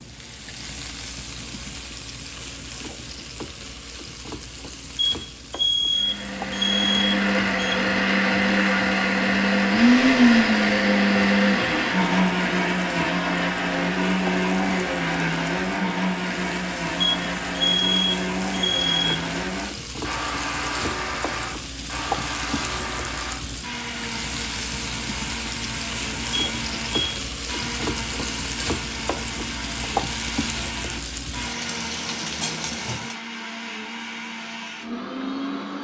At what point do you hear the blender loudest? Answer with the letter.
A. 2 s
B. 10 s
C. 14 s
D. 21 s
B.